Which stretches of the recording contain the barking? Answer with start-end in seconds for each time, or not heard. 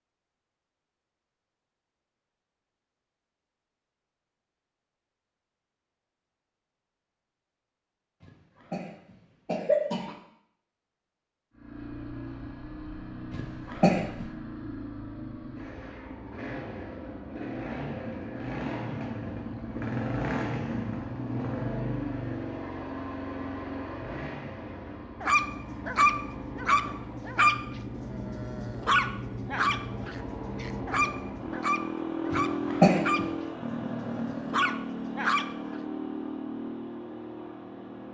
25.2-27.6, 28.1-33.2, 34.0-35.5.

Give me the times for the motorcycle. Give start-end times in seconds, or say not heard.
11.5-38.1.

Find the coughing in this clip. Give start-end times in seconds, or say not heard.
8.7-10.2, 13.3-14.2, 32.3-33.2.